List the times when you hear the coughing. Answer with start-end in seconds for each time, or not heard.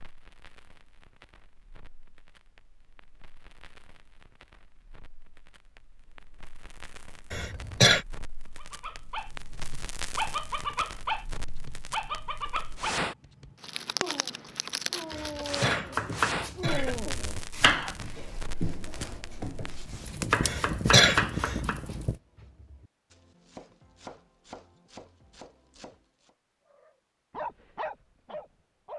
7.3-8.1, 15.1-16.9, 20.4-21.6.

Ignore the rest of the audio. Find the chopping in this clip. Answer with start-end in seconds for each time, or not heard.
15.7-26.4.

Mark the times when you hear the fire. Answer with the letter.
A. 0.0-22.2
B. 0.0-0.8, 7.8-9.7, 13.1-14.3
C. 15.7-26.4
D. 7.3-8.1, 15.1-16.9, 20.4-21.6
A.